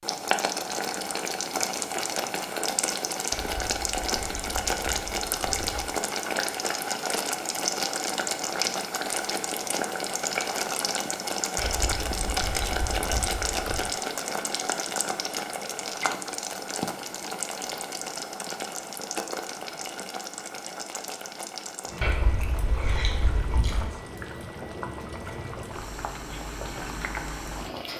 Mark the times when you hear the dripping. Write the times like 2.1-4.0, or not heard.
not heard.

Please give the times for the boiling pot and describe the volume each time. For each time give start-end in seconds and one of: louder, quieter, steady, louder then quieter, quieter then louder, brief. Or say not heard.
0.0-27.9 quieter.